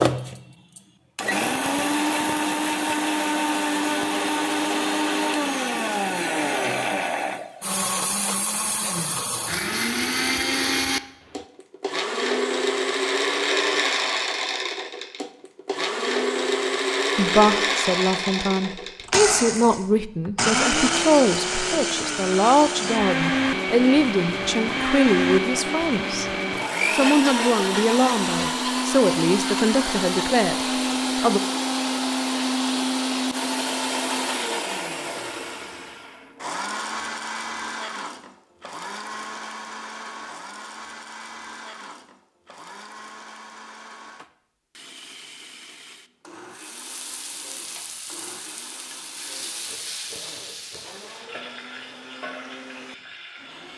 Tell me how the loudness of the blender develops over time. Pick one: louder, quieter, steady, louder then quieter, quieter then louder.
quieter.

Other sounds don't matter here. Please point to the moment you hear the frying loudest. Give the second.
50 s.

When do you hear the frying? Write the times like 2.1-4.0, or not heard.
46.5-53.7.